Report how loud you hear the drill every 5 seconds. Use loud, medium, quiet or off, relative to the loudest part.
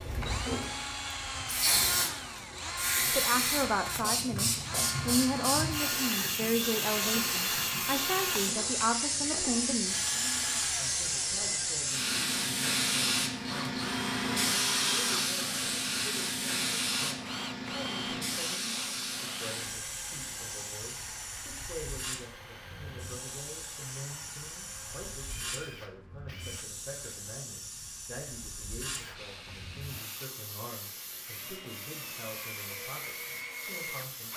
loud, loud, loud, loud, medium, medium, medium.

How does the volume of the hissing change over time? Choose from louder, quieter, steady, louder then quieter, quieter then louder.
quieter.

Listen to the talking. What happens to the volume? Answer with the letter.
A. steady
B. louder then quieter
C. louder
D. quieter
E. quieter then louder
D.